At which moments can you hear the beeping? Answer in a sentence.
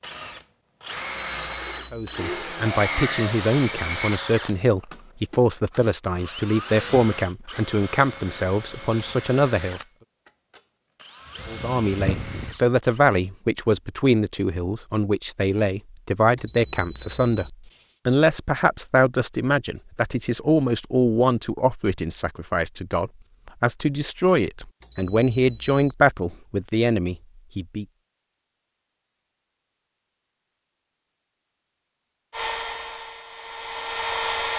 The beeping can be heard from 1.3 to 2.2 s, from 16.4 to 17.5 s and from 24.8 to 25.9 s.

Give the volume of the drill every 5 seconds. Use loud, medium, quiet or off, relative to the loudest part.
loud, medium, medium, off, off, off, loud.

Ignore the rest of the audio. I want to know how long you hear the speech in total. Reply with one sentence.
You can hear the speech for 24 seconds altogether.